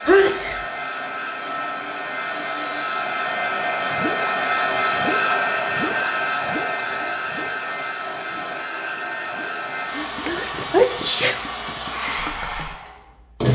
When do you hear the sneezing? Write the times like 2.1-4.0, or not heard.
0.1-0.6, 9.9-11.4.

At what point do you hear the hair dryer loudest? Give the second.
5 s.